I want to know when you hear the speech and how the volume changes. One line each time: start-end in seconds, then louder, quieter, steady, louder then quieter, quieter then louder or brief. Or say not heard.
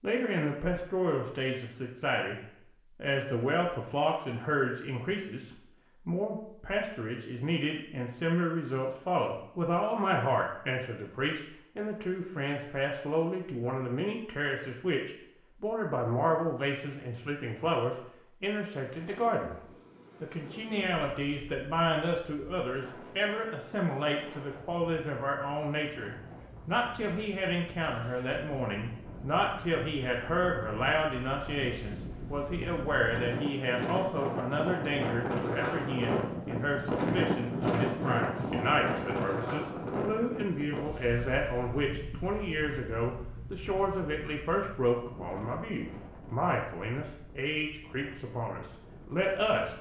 0.0-2.4 brief
3.0-19.6 steady
20.2-49.7 steady.